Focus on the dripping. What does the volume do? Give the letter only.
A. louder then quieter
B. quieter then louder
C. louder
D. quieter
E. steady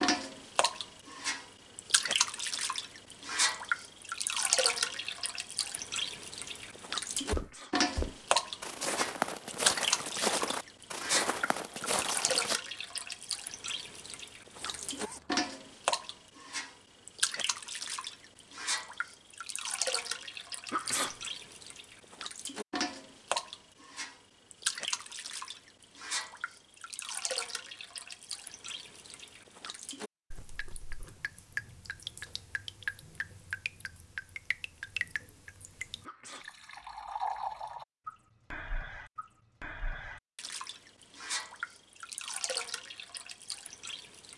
D.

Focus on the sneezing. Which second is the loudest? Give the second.
21 s.